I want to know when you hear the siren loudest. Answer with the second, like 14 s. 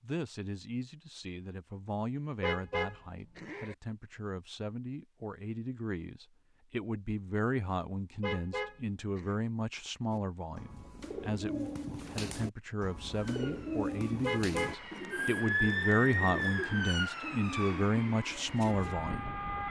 16 s.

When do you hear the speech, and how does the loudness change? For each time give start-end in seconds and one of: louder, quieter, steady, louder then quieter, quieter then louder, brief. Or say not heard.
0.0-19.4 louder.